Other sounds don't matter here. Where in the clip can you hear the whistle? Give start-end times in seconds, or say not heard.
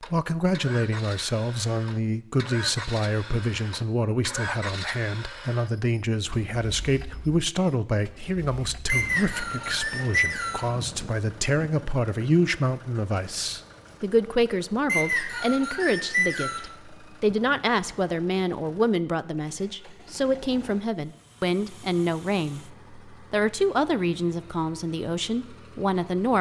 8.8-10.7, 14.8-16.7.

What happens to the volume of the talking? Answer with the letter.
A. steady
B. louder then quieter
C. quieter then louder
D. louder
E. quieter
A.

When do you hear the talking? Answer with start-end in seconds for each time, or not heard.
0.0-26.3.